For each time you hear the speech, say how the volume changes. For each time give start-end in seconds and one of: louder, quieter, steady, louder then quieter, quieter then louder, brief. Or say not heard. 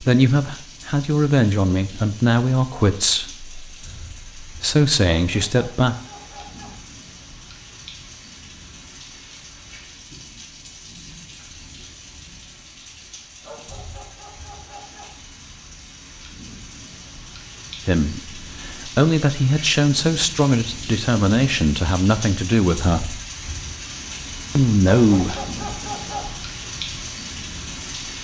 0.0-6.0 quieter then louder
17.9-23.2 steady
24.6-25.4 brief.